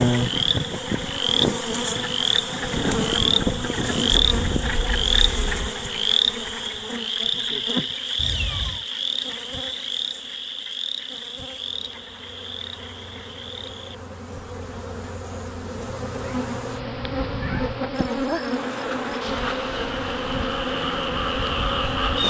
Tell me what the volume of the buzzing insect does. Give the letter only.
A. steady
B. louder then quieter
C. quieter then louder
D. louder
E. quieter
C.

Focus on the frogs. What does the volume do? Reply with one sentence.
The volume of the frogs goes down, then up.